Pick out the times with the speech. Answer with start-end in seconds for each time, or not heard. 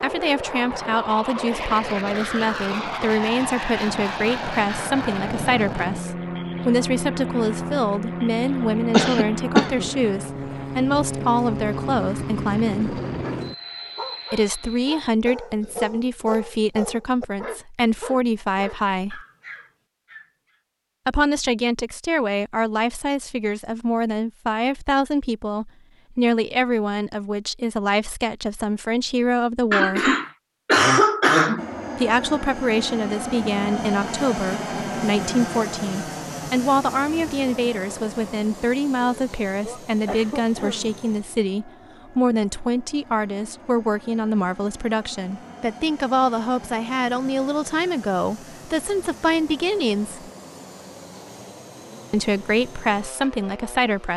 0.0-13.0, 14.3-19.2, 21.1-30.1, 31.9-50.3, 52.1-54.1.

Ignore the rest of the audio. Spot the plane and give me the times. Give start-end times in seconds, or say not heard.
0.0-15.0, 31.6-54.1.